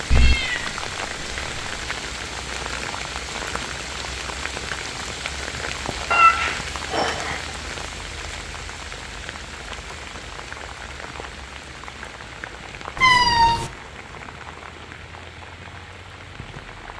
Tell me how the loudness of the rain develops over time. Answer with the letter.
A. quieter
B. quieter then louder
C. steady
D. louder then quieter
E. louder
A.